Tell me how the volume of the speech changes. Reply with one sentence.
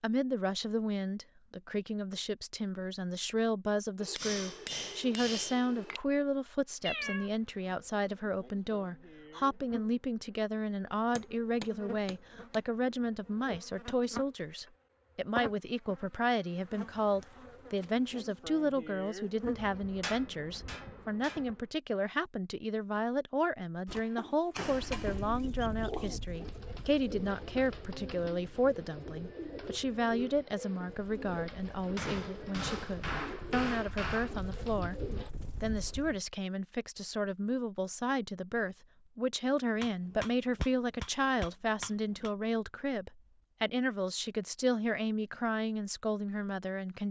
The loudness of the speech stays about the same.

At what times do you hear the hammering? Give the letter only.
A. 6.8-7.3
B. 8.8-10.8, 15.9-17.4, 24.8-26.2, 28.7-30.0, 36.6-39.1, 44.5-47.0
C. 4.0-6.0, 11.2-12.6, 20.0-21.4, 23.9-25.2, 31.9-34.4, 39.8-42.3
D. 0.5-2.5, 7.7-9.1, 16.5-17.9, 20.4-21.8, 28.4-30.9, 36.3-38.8
C.